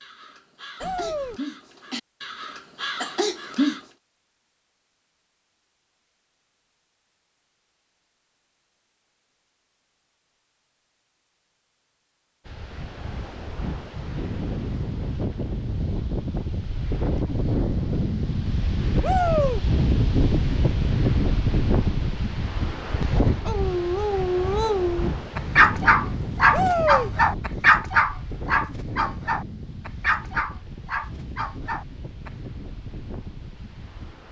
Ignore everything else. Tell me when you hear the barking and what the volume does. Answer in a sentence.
The barking can be heard from 23.1 to 32.3 s, getting louder then quieter.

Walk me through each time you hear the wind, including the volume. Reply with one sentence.
You can hear the wind from 12.4 to 34.2 s, getting louder then quieter.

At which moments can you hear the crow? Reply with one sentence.
You can hear the crow from 0.0 to 3.8 s.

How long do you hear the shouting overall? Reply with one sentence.
You can hear the shouting for 2 seconds altogether.